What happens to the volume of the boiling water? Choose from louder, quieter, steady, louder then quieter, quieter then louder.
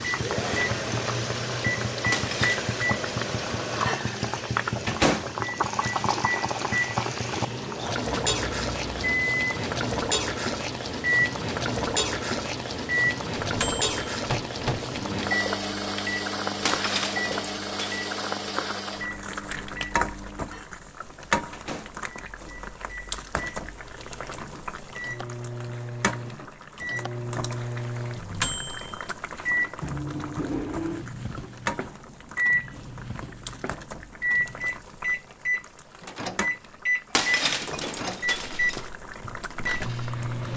quieter.